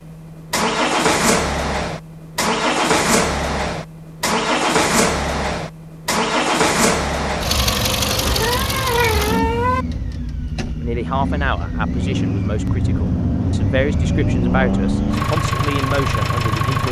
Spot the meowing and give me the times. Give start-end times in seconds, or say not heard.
8.1-9.8.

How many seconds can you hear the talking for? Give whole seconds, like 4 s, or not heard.
6 s.